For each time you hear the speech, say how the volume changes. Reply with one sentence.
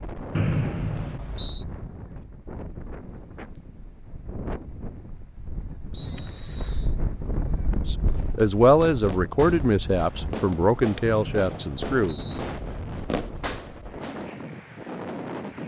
The speech can be heard from 7.8 to 12.2 s, getting quieter.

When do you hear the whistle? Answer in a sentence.
You can hear the whistle from 0.3 to 1.6 s, from 5.9 to 7.0 s and from 11.1 to 12.4 s.